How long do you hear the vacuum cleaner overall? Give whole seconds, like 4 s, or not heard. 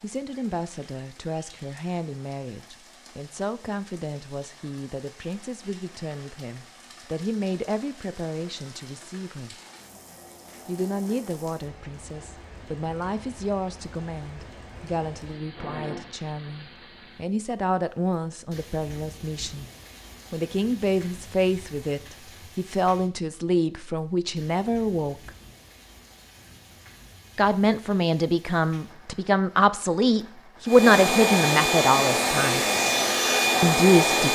4 s.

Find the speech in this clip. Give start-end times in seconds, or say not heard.
0.0-9.6, 10.7-19.6, 20.3-25.3, 27.4-32.6, 33.6-34.3.